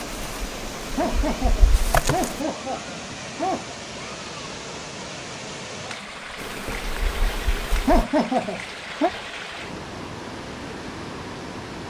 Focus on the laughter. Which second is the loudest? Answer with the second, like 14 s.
8 s.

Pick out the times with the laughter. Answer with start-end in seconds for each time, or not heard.
0.9-3.6, 7.8-9.1.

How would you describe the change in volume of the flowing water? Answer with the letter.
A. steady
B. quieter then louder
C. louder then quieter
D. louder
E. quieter
A.